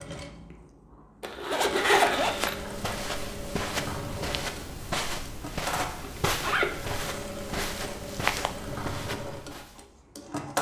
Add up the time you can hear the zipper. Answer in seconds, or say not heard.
3 s.